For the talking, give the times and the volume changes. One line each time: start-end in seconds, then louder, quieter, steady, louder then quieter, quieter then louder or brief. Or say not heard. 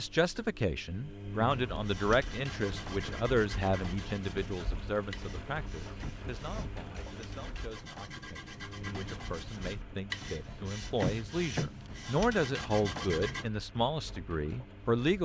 0.0-15.1 quieter then louder.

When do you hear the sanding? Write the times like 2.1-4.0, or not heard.
1.5-13.5.